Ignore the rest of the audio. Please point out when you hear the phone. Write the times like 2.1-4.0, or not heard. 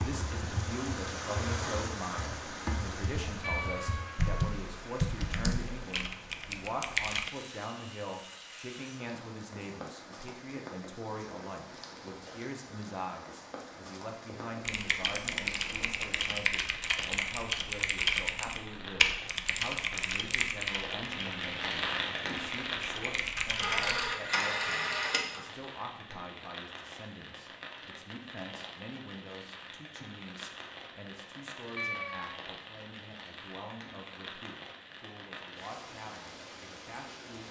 23.4-25.4.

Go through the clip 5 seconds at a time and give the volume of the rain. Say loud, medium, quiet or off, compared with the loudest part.
loud, medium, medium, medium, loud, medium, medium, medium.